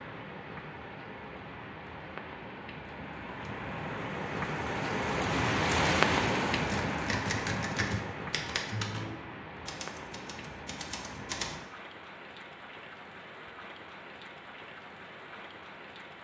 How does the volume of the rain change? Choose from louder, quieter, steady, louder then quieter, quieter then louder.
louder then quieter.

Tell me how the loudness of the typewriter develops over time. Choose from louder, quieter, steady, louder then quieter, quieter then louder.
quieter.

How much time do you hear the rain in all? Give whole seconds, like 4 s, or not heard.
16 s.